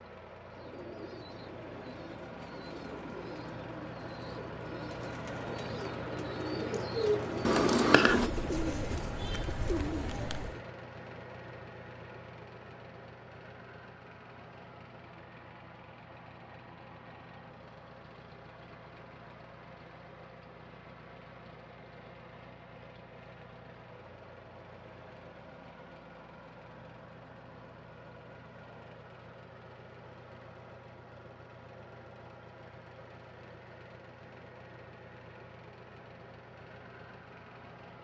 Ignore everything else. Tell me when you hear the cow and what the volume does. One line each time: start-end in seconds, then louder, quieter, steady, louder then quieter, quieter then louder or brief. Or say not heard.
not heard.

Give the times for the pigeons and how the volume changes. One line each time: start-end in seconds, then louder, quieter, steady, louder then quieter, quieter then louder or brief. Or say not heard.
0.5-10.7 louder.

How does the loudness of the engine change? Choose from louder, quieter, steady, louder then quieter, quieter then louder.
quieter.